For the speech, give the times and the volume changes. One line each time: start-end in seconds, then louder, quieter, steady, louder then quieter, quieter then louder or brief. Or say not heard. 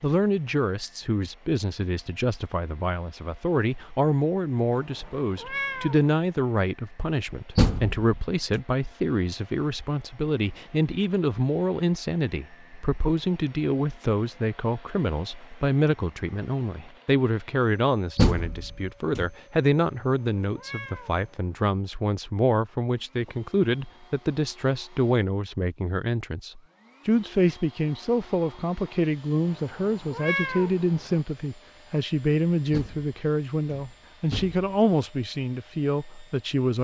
0.0-36.7 steady.